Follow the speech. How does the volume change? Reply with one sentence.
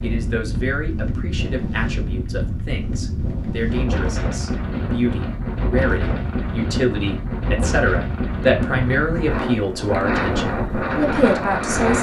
The volume of the speech goes up.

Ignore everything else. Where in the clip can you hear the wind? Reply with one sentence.
The wind can be heard from 0.0 to 11.9 s.